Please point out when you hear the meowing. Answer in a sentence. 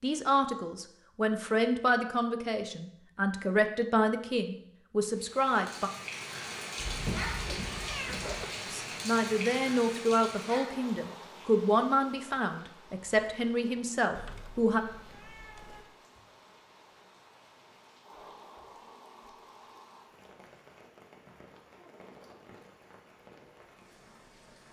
The meowing can be heard from 6.8 to 8.4 s and from 14.2 to 15.8 s.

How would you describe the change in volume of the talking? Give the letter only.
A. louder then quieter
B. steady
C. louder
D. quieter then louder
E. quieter
B.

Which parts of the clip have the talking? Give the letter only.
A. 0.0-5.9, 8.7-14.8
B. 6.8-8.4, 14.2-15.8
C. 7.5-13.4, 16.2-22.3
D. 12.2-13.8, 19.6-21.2
A.